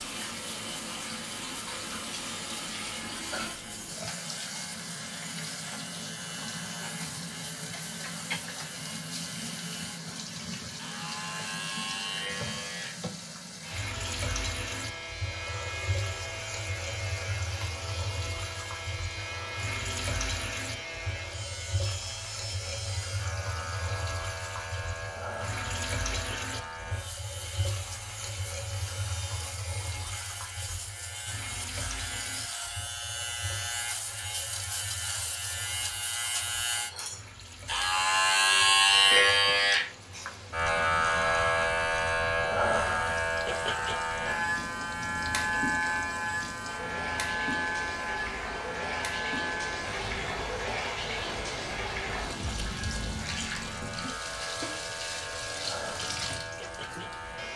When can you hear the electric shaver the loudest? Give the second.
39 s.